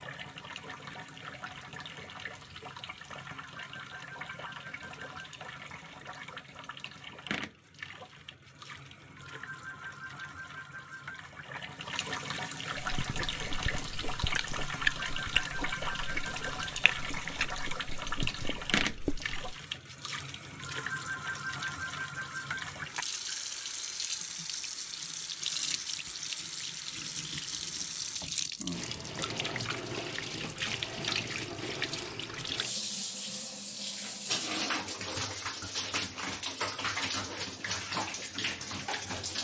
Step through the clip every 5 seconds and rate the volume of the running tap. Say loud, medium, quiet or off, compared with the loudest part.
medium, medium, loud, loud, loud, loud, loud, loud.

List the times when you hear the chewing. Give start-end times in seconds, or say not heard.
12.8-19.6.